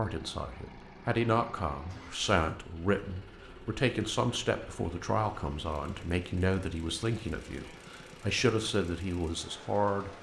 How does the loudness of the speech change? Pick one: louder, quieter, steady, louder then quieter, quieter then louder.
steady.